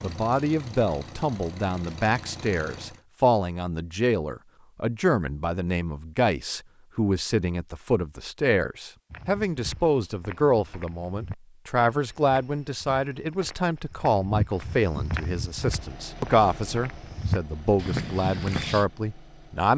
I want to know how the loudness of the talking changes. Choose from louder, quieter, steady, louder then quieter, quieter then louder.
steady.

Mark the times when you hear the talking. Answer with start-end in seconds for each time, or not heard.
0.0-19.7.